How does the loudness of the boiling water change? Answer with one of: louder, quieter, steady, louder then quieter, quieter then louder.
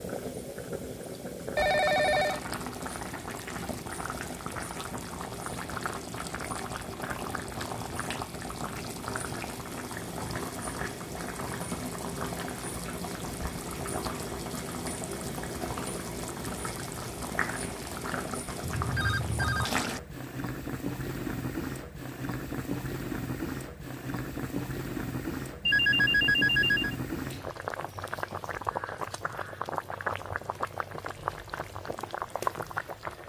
steady.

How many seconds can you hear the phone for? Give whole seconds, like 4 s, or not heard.
3 s.